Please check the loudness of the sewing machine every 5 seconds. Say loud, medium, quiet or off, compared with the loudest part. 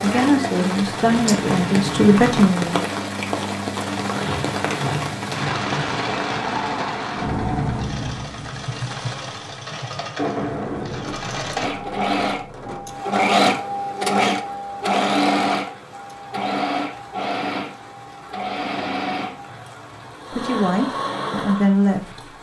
medium, medium, loud, loud, medium.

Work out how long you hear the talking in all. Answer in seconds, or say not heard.
5 s.